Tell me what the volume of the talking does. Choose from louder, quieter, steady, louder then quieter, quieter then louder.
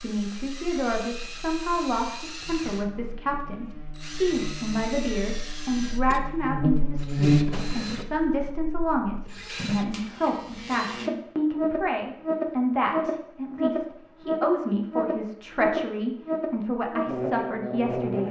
steady.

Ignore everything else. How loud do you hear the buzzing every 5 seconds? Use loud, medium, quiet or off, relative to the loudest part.
quiet, loud, loud, loud.